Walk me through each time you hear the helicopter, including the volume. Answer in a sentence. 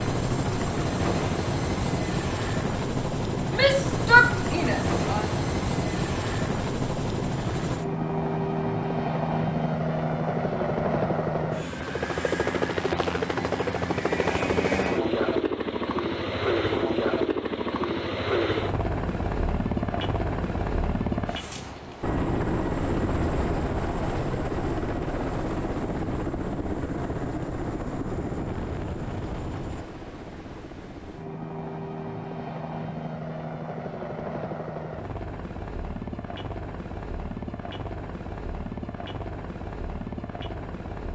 The helicopter can be heard from 0.0 to 41.1 s, getting quieter.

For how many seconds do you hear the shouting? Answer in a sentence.
You can hear the shouting for 2 seconds altogether.